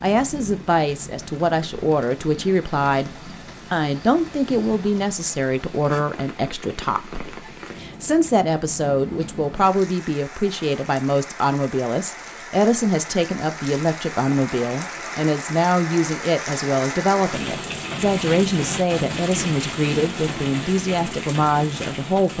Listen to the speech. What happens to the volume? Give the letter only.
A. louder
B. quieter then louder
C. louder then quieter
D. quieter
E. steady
E.